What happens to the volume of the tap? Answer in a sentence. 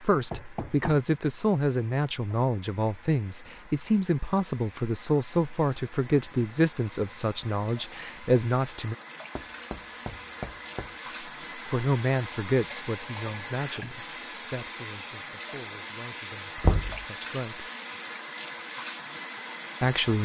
The volume of the tap goes up.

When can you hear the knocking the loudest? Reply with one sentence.
The loudest moment of the knocking is at 17 seconds.